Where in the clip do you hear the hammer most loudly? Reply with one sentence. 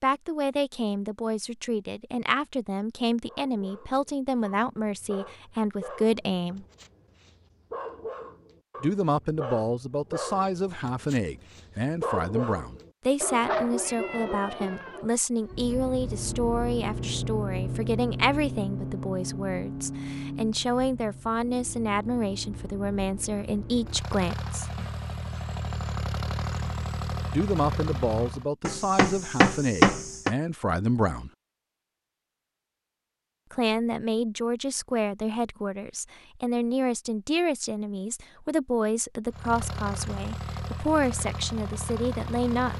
The volume of the hammer peaks at 30 seconds.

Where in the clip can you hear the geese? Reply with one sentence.
The geese can't be heard in this clip.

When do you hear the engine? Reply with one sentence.
The engine can be heard from 15.4 to 28.4 s and from 39.3 to 42.7 s.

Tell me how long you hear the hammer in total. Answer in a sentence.
You can hear the hammer for 2 seconds altogether.